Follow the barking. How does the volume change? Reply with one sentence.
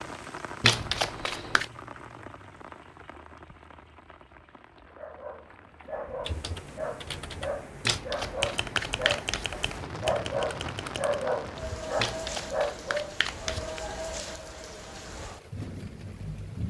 The loudness of the barking goes up.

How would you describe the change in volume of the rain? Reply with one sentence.
The volume of the rain goes down, then up.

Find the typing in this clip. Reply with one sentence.
The typing can be heard from 6.2 to 11.2 s.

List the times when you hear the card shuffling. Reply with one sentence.
You can hear the card shuffling from 0.6 to 1.7 s, from 7.8 to 9.4 s and from 11.9 to 13.8 s.